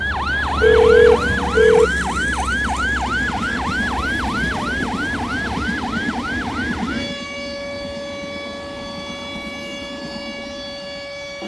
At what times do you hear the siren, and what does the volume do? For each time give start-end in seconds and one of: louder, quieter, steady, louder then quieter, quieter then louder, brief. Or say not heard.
0.0-11.4 quieter.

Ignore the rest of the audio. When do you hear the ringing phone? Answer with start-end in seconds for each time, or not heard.
0.6-1.9.